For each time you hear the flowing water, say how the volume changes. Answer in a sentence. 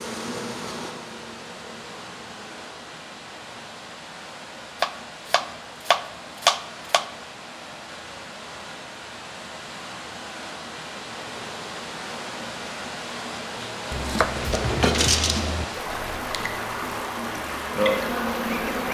The flowing water can be heard from 0.0 to 18.8 s, getting louder.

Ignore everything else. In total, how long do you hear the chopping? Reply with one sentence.
The chopping can be heard for 4 seconds in total.